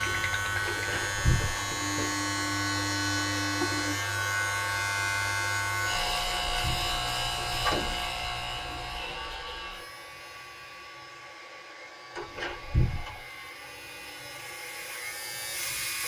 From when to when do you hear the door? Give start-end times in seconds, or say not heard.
0.7-2.1, 6.0-8.1, 12.2-13.2.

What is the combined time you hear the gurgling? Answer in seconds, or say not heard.
2 s.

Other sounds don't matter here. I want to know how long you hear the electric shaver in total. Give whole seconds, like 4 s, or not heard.
16 s.